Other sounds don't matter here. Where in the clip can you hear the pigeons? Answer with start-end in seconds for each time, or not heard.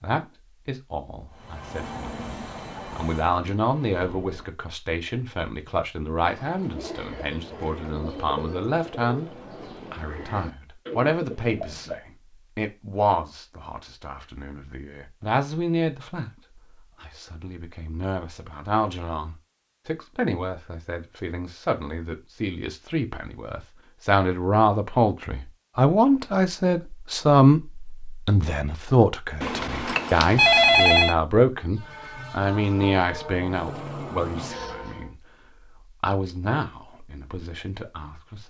6.2-12.0.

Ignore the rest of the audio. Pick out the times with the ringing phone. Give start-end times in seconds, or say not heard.
29.4-31.1.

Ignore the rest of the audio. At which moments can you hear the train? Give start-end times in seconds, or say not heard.
1.3-4.5, 31.6-35.1.